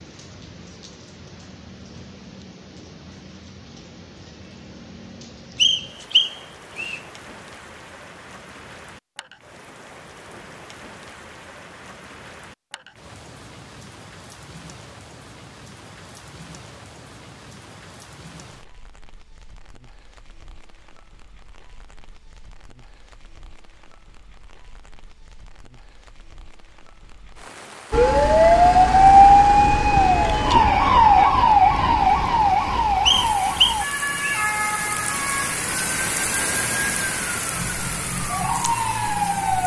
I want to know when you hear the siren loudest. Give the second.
29 s.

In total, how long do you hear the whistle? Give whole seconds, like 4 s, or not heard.
3 s.